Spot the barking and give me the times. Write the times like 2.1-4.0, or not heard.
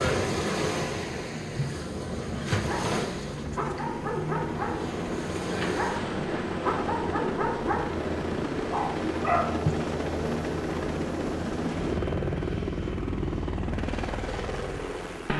2.4-9.6.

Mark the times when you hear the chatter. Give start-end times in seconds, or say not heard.
not heard.